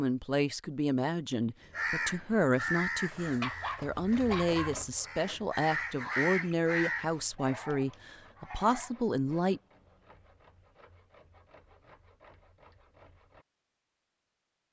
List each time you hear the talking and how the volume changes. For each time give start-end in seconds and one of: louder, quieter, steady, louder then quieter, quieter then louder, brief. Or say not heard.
0.0-9.6 steady.